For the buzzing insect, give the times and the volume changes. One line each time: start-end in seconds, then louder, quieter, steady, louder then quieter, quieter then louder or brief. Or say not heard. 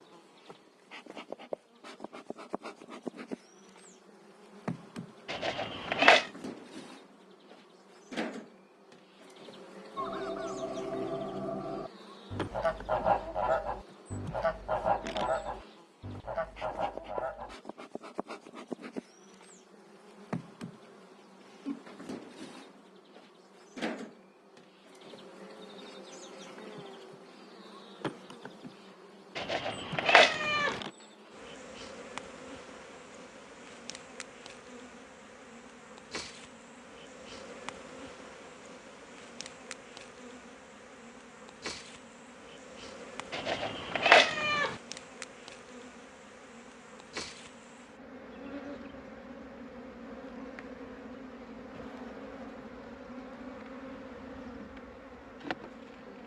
0.0-56.2 steady.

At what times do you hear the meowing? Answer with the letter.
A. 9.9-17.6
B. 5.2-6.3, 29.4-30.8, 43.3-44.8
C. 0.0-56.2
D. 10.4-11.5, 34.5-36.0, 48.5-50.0
B.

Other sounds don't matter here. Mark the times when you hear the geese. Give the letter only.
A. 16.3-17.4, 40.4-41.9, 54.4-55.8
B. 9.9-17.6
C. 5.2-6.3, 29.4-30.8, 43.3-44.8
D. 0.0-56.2
B.